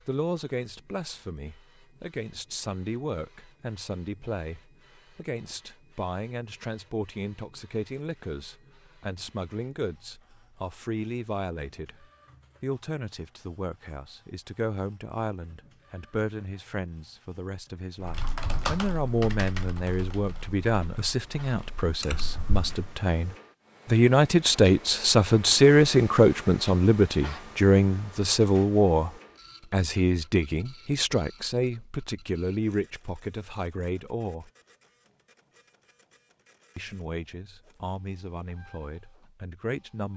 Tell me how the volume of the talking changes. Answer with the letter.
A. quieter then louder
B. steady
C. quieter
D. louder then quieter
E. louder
D.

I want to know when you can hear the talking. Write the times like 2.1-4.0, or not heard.
0.1-29.1, 29.7-34.5, 36.8-40.1.